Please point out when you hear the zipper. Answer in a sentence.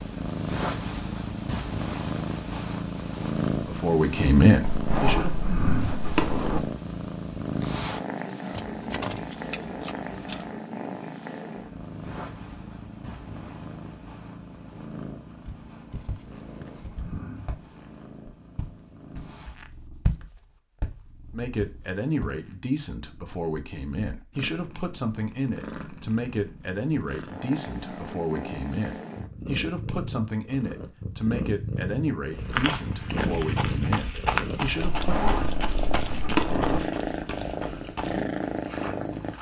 The zipper can be heard from 4.6 to 6.6 s and from 34.8 to 36.8 s.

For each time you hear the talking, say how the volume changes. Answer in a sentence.
The talking can be heard briefly from 3.5 to 5.3 s; and from 21.3 to 35.2 s, at a steady volume.